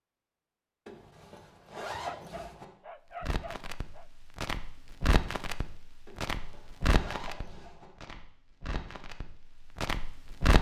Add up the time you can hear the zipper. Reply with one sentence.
The zipper can be heard for 4 seconds in total.